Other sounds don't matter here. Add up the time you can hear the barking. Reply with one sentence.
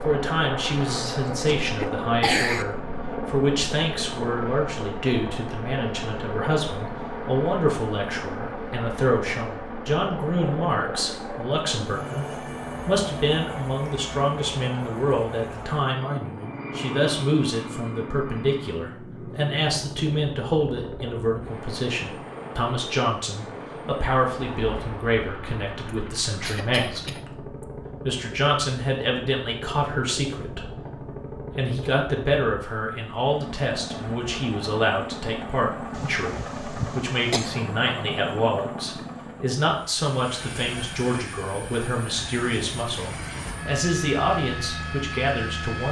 The barking can't be heard in this clip.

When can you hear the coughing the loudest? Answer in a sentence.
The volume of the coughing peaks at 2 seconds.